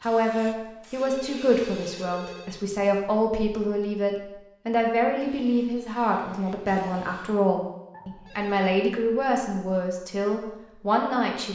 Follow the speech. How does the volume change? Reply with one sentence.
The volume of the speech stays about the same.